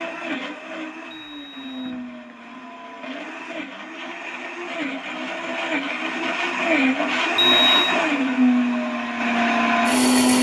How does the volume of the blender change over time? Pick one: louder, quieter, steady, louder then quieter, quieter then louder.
louder.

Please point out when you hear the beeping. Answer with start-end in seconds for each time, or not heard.
1.1-2.0, 7.3-8.0.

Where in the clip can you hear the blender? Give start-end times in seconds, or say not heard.
0.0-10.3.